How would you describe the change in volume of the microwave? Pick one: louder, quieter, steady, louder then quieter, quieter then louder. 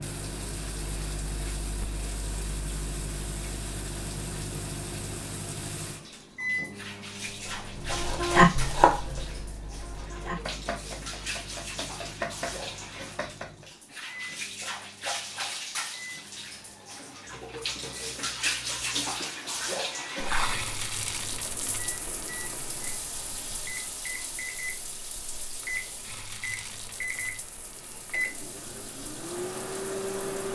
quieter then louder.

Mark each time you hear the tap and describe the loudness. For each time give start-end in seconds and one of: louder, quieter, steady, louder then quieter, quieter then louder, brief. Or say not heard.
0.0-30.5 louder then quieter.